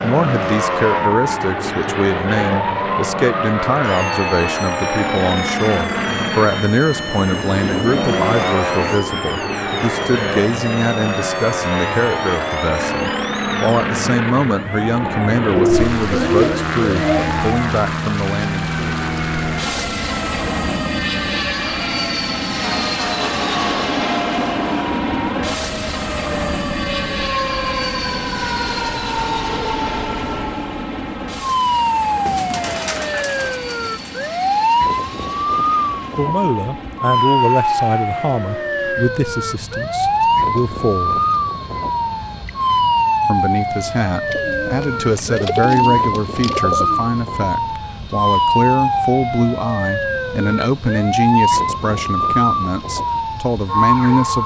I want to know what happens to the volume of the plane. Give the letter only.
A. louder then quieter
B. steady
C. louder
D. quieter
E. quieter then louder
D.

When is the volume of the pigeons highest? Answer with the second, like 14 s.
16 s.